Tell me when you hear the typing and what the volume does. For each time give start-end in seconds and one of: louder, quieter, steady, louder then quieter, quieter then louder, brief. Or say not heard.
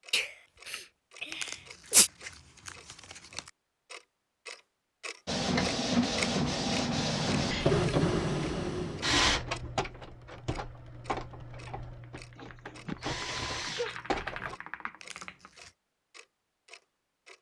10.0-15.5 louder.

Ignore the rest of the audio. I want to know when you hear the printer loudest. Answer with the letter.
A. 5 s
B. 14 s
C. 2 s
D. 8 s
D.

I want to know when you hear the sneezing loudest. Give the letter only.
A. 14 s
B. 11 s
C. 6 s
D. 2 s
D.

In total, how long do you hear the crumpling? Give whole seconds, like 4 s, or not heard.
3 s.